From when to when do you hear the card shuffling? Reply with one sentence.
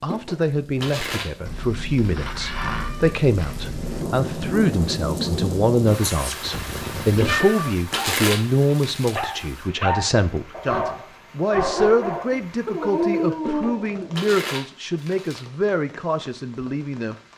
The card shuffling can be heard from 0.1 to 1.4 s, from 7.2 to 9.2 s and from 13.4 to 15.4 s.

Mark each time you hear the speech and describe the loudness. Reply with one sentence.
The speech can be heard from 0.0 to 17.1 s, at a steady volume.